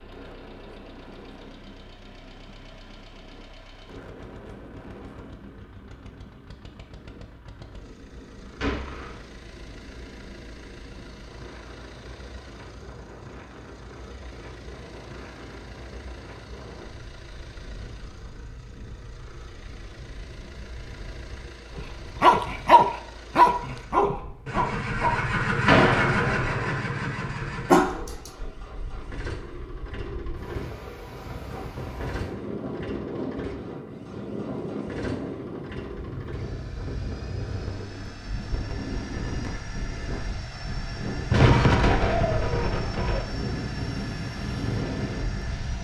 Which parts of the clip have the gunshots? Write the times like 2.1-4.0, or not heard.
8.6-9.2, 25.6-26.8, 41.3-43.2.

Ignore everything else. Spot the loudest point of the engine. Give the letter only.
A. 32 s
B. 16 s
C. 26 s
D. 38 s
C.